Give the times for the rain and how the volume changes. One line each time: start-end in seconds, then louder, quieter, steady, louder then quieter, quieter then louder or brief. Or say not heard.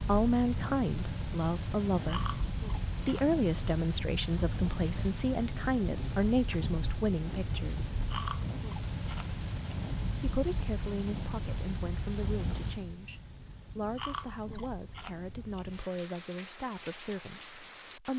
0.0-18.1 quieter.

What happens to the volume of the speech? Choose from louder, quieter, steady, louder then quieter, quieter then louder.
quieter.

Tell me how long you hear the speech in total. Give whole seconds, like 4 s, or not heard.
16 s.